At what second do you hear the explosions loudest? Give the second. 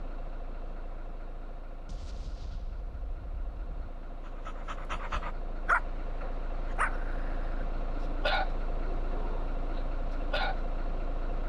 2 s.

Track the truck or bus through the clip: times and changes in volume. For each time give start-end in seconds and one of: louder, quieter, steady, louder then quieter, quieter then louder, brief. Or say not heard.
0.0-11.4 louder.